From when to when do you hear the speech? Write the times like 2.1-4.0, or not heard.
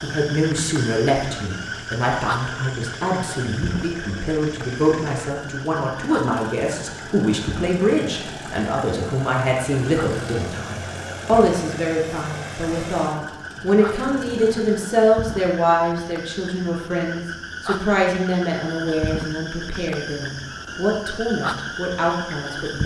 0.0-22.8.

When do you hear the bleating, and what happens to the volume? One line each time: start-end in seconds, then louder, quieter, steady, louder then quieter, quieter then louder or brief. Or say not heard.
not heard.